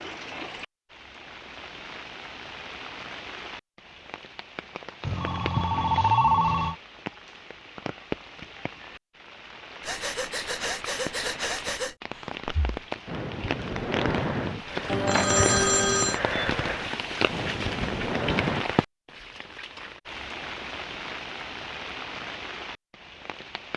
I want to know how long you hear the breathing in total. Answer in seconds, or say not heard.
9 s.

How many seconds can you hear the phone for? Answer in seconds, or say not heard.
3 s.